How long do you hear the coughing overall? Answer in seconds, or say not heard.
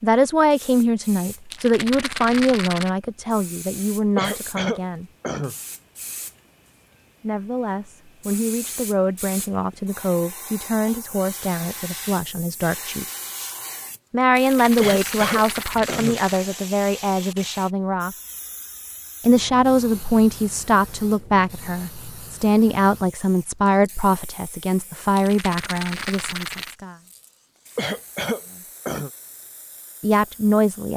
4 s.